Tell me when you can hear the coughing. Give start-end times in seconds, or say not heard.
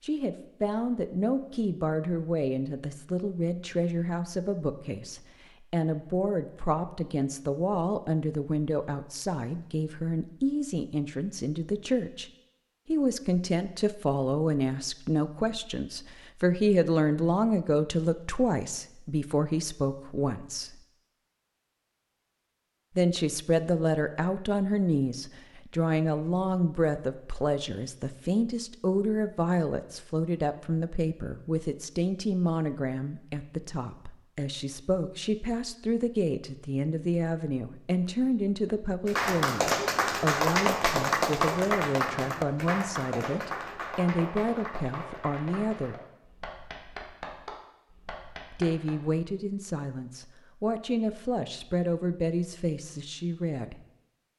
not heard.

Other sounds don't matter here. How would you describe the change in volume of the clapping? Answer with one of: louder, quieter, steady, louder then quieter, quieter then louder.
quieter.